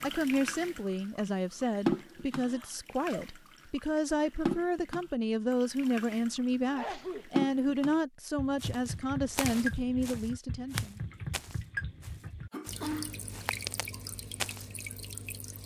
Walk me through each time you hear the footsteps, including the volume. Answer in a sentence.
You can hear the footsteps from 8.6 to 14.7 s, getting quieter then louder.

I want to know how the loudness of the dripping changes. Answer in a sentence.
The volume of the dripping goes down.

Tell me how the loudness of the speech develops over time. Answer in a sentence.
The loudness of the speech stays about the same.